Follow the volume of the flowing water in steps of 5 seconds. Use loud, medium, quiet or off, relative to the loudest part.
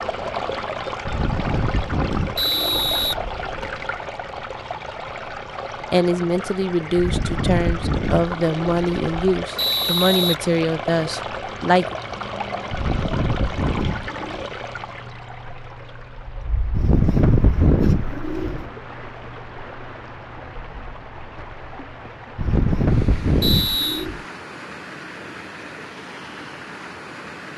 loud, loud, loud, medium, medium, medium.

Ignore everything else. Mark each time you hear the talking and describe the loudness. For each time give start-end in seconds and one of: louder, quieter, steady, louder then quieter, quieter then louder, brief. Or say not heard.
5.9-11.9 steady.